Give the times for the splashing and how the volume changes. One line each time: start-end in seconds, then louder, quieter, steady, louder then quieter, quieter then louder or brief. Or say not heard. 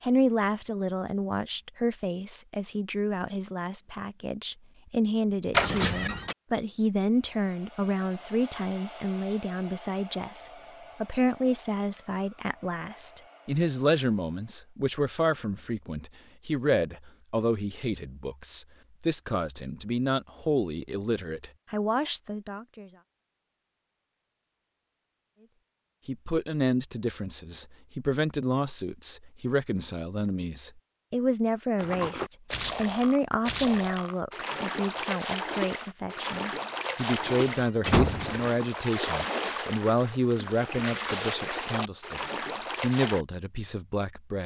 31.8-43.2 steady.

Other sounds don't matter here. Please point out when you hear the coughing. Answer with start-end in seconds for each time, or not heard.
not heard.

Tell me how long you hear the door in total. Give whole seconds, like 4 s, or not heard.
2 s.